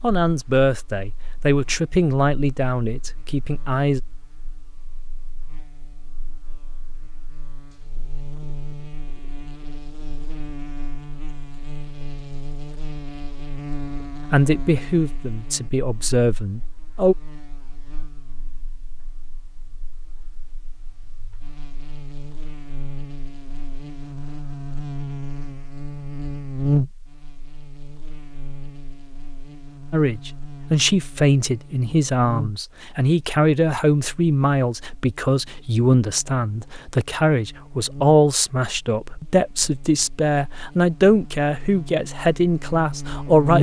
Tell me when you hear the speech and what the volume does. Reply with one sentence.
You can hear the speech from 0.0 to 4.0 s, getting quieter; briefly from 14.3 to 17.1 s; and from 29.9 to 43.5 s, at a steady volume.